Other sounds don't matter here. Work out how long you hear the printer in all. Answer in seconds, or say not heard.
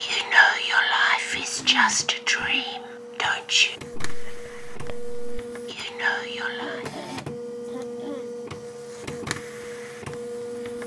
11 s.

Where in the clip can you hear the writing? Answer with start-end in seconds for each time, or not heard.
not heard.